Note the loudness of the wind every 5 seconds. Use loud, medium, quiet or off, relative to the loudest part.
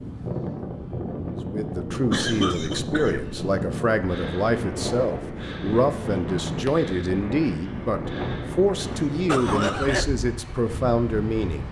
loud, loud, medium.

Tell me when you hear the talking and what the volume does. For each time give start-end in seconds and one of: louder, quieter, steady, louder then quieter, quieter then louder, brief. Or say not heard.
1.5-11.6 steady.